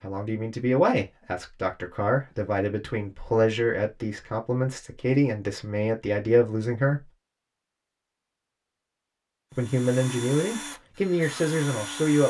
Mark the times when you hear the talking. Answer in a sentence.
The talking can be heard from 0.0 to 7.1 s and from 9.5 to 12.2 s.